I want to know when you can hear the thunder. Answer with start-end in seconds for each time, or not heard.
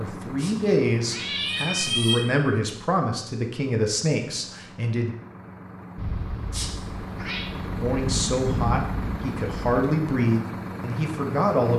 6.0-9.8.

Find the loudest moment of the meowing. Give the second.
2 s.